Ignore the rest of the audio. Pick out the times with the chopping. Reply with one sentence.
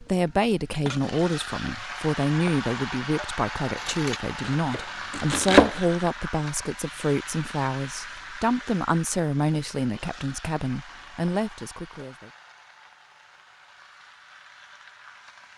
The chopping can be heard from 3.8 to 5.8 s.